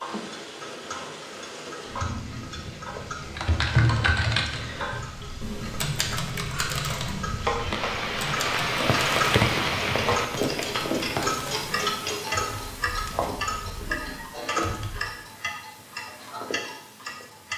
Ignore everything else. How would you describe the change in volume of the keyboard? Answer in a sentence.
The loudness of the keyboard goes down.